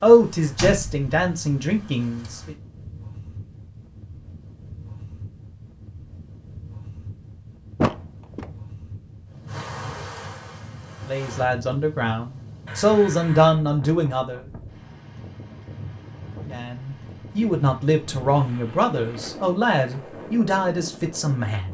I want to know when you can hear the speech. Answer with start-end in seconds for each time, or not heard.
0.0-2.5, 11.0-14.4, 16.5-21.6.